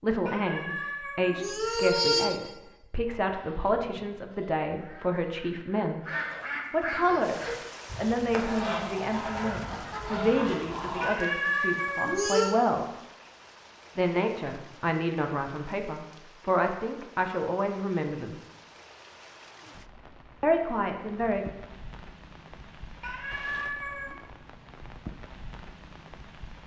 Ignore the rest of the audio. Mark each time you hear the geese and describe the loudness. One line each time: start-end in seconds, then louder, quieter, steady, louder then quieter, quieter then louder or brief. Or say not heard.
3.0-11.2 louder.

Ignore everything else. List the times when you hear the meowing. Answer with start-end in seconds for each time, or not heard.
0.2-2.2, 11.0-12.6, 23.0-24.1.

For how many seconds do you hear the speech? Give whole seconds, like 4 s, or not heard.
18 s.